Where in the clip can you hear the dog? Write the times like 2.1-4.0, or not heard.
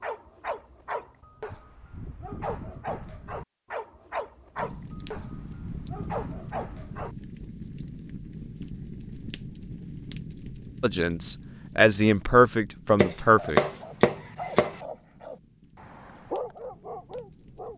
0.0-7.2, 13.2-17.7.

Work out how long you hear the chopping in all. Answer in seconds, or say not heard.
2 s.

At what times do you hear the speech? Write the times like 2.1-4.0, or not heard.
10.8-13.6.